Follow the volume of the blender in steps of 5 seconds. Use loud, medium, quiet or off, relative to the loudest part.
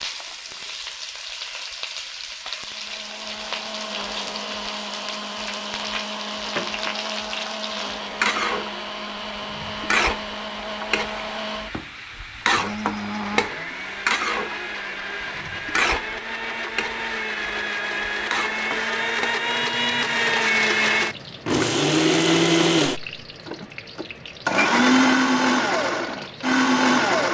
quiet, quiet, quiet, medium, loud, loud.